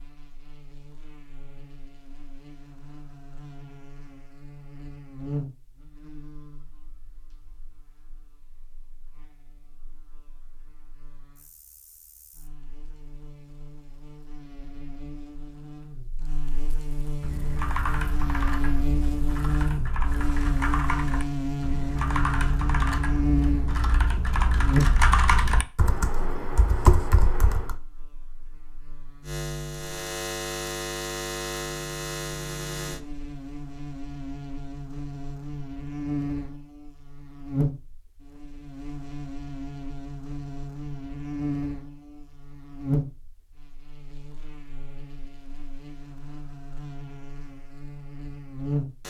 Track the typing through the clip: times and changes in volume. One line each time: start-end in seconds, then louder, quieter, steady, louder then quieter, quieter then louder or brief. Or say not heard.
17.2-27.8 louder.